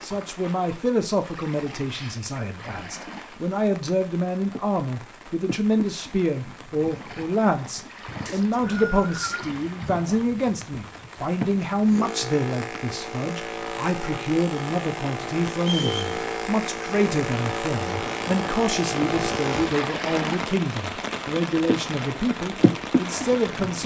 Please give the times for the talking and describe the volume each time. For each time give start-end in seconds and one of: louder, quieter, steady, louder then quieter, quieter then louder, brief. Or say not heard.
0.0-23.8 steady.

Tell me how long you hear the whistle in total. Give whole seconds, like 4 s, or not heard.
2 s.